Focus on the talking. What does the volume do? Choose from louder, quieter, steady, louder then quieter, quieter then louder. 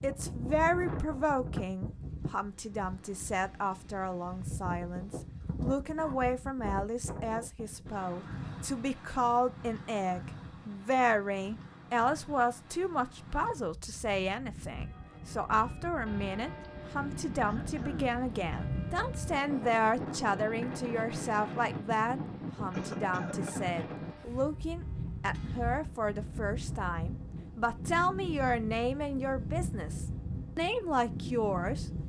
steady.